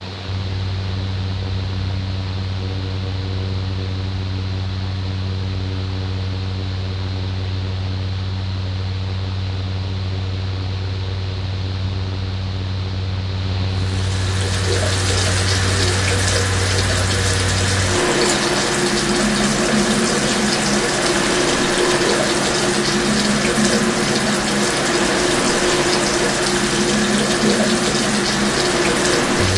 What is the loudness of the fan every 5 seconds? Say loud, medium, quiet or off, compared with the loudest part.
medium, medium, medium, loud, loud, loud.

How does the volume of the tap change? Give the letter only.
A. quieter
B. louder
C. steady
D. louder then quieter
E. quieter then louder
C.